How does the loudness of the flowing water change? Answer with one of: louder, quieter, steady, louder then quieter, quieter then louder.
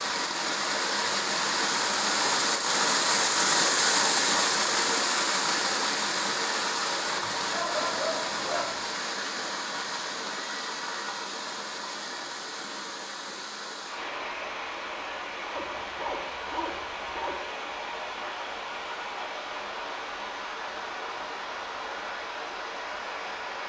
quieter.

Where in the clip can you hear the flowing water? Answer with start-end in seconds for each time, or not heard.
0.0-23.6.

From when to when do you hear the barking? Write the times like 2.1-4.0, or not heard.
7.0-8.8, 15.6-17.4.